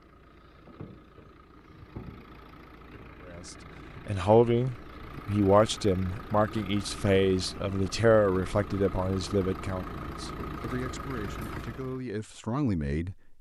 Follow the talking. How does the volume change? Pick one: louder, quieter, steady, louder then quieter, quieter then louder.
quieter.